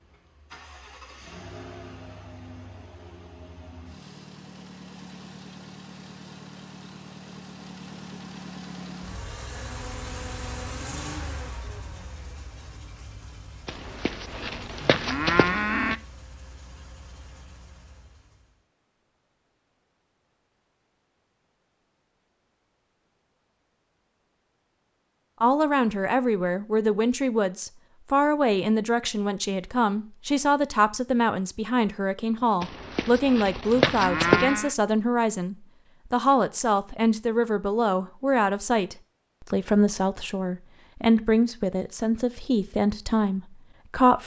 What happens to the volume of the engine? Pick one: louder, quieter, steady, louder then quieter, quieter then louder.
louder then quieter.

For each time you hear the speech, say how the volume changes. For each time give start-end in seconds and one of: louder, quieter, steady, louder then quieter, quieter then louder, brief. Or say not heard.
25.4-44.2 steady.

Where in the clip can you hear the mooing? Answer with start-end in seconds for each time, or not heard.
13.7-16.0, 32.6-34.8.